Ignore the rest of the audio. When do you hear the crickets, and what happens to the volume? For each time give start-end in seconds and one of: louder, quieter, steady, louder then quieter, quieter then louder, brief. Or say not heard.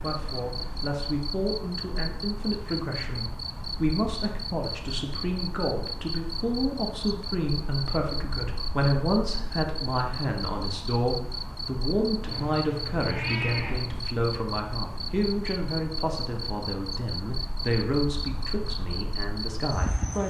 0.0-20.2 steady.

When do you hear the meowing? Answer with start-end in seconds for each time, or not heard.
12.2-14.1.